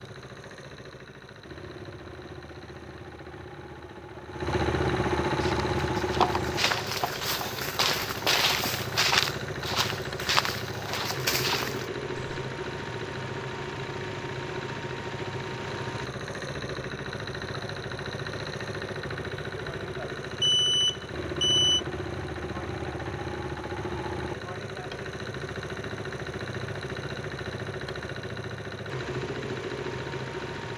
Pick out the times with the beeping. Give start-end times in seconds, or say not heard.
20.4-21.8.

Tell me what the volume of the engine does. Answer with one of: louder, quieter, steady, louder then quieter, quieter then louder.
steady.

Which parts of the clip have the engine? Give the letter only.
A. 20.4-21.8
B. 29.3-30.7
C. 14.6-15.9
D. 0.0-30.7
D.